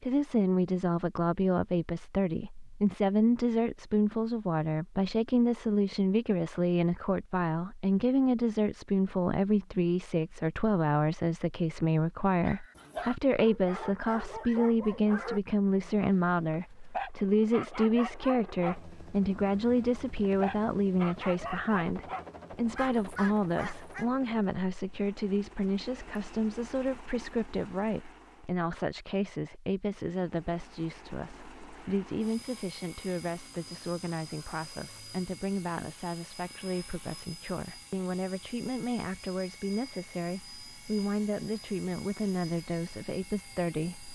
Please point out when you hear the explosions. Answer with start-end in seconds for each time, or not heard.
not heard.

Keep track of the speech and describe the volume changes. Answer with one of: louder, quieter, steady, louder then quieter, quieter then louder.
quieter.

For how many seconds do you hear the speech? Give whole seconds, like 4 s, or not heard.
44 s.